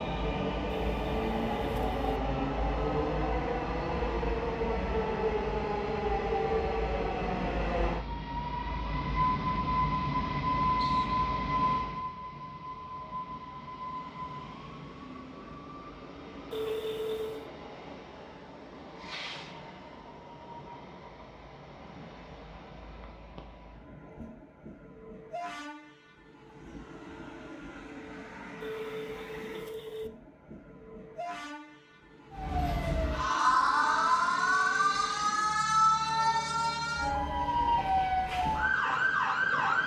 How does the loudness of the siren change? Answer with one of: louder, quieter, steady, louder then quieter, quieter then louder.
steady.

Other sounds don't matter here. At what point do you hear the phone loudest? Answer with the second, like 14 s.
17 s.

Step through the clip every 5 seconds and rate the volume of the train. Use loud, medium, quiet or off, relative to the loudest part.
loud, loud, loud, quiet, quiet, quiet, quiet, quiet.